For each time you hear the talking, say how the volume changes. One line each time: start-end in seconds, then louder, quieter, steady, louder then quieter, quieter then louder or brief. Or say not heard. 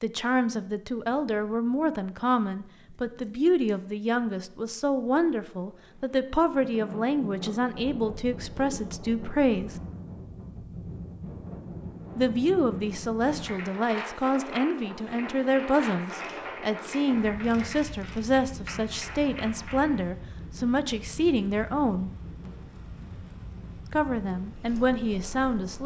0.0-9.8 steady
12.2-22.1 steady
23.9-25.8 brief.